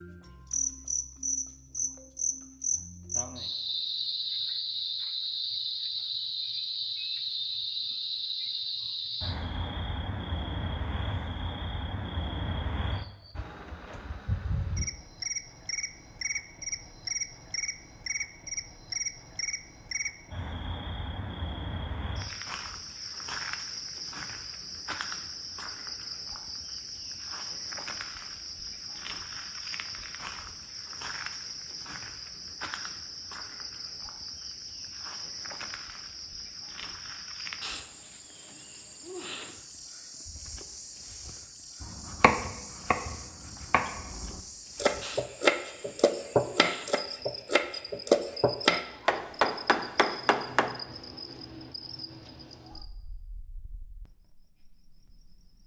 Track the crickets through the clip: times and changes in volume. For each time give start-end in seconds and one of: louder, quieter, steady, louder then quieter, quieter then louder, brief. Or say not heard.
0.0-55.6 quieter.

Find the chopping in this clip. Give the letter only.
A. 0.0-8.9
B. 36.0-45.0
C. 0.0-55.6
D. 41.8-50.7
D.